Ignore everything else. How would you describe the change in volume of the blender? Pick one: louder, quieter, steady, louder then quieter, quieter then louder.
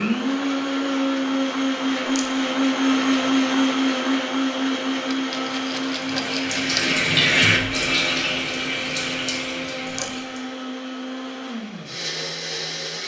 quieter.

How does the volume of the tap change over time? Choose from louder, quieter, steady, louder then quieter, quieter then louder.
louder then quieter.